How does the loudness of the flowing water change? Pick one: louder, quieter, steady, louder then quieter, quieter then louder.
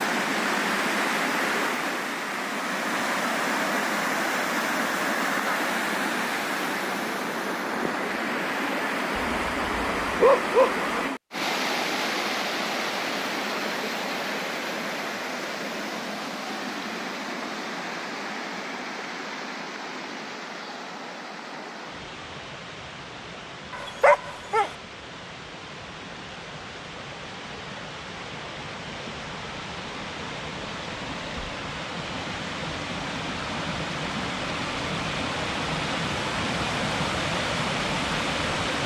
quieter then louder.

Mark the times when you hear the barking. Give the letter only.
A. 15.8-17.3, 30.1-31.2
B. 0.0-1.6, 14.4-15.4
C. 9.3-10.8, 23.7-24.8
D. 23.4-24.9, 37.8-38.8
C.